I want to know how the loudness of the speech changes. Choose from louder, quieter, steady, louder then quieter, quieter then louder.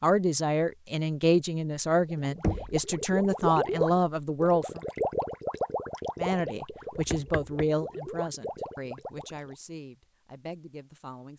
quieter.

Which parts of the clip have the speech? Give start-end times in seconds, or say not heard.
0.0-4.8, 6.2-11.3.